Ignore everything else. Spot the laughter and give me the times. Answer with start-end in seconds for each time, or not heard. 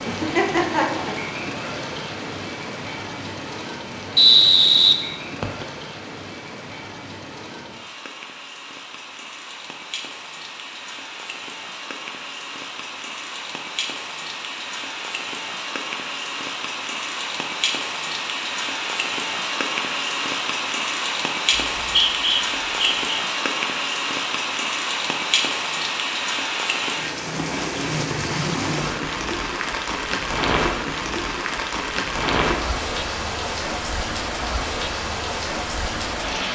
0.1-1.1.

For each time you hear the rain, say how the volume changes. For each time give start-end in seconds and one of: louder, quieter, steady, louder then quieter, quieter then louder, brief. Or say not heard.
0.0-36.5 louder.